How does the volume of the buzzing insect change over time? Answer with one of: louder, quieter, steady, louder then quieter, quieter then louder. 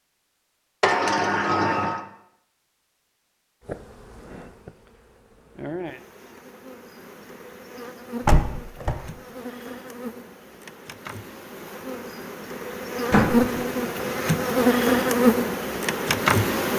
louder.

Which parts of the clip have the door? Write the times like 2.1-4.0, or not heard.
0.8-2.0, 8.2-9.0, 13.1-13.6.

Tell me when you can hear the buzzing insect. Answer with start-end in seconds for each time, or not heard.
3.6-16.7.